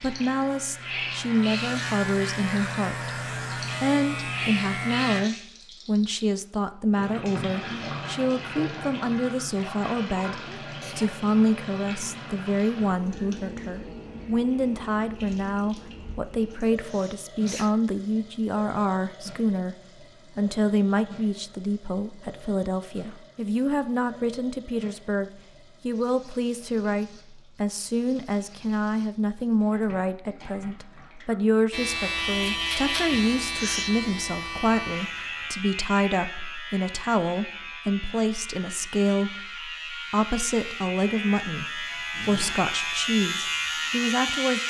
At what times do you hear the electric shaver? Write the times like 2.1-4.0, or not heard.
0.0-5.2, 31.7-44.6.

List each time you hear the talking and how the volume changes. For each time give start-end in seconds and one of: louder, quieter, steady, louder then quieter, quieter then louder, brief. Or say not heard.
0.0-19.8 steady
20.4-44.6 steady.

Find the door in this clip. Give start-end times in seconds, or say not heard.
not heard.